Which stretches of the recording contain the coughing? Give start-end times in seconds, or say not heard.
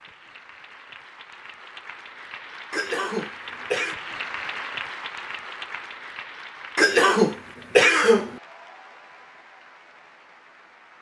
2.7-4.0, 6.8-8.3.